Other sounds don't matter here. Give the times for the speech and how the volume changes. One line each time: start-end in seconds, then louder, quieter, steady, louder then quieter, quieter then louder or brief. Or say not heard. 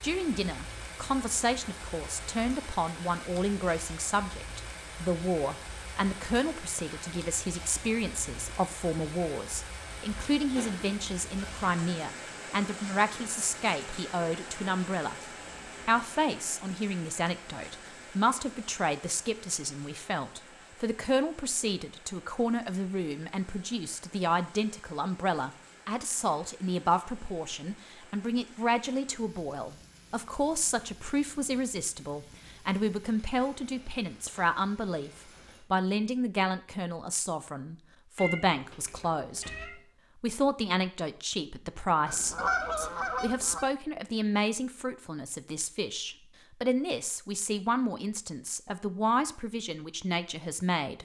0.0-15.2 steady
15.8-35.1 steady
35.7-51.0 steady.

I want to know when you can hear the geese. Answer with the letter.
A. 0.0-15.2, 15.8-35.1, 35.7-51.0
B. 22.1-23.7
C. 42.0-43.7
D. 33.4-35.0
C.